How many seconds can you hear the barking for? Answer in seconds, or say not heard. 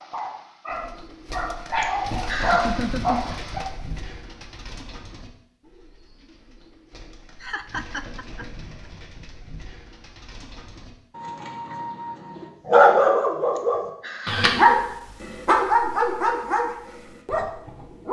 9 s.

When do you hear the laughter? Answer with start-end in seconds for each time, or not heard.
1.8-3.4, 7.4-8.4, 13.6-14.9.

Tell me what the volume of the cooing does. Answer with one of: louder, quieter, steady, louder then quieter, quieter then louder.
quieter then louder.